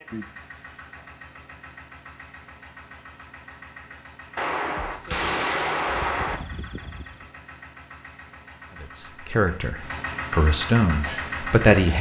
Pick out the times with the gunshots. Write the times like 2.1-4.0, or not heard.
4.3-6.4.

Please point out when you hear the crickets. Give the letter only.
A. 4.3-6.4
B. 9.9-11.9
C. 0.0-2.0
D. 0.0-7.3
D.